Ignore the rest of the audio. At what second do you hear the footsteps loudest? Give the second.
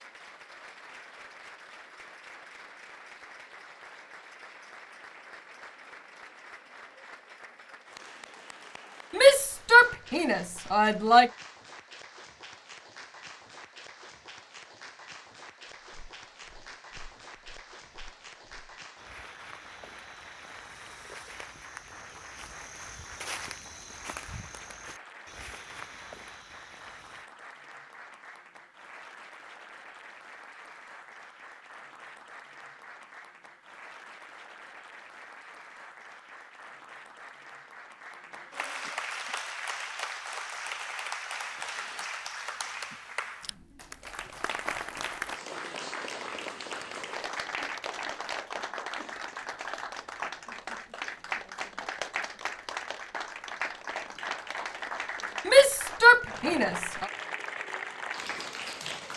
23 s.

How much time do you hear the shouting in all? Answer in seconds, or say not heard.
4 s.